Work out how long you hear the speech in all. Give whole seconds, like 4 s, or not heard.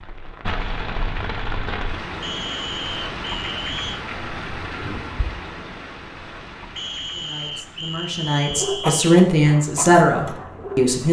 4 s.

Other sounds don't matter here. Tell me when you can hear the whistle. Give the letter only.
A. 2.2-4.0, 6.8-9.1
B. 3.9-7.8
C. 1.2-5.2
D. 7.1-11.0
A.